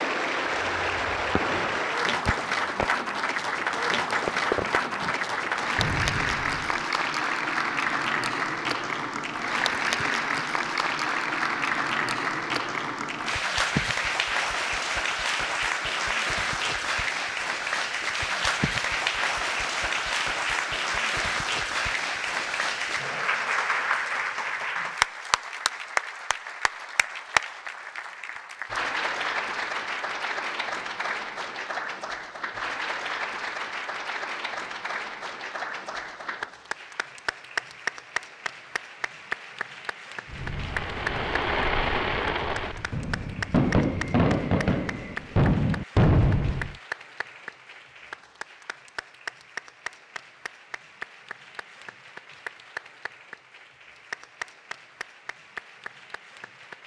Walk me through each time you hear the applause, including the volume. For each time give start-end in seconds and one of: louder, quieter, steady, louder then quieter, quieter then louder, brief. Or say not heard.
0.0-56.8 quieter.